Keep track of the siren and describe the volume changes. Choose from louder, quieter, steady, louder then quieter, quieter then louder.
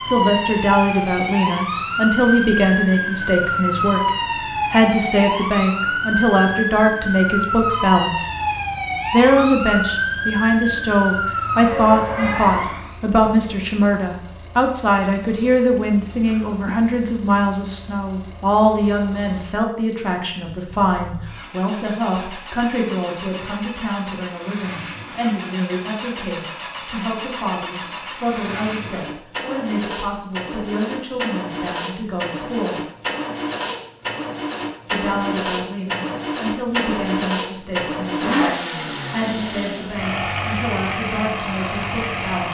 steady.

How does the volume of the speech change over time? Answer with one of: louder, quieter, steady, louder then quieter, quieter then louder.
quieter.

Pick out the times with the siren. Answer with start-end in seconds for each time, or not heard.
0.0-12.9.